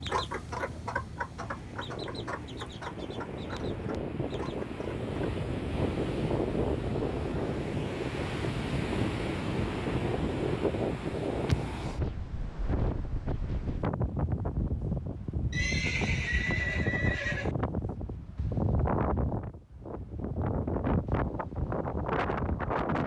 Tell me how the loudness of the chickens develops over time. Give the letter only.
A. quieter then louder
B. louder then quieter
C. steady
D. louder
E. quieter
E.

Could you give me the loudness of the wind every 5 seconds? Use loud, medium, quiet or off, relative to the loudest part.
medium, loud, loud, loud, loud.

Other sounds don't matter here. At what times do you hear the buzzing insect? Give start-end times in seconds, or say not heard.
not heard.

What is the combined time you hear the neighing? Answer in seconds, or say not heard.
2 s.